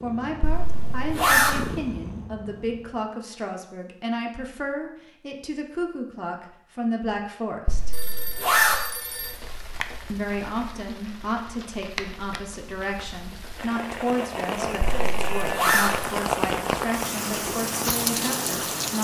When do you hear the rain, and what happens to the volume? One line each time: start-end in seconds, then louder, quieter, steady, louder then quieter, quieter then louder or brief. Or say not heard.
8.9-18.9 louder.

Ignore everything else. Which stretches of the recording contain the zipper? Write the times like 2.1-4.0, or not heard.
0.4-1.5, 7.7-8.8, 14.8-15.9.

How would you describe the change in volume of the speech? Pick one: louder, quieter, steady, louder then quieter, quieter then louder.
steady.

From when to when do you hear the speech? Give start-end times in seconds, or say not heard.
0.0-8.0, 10.1-18.9.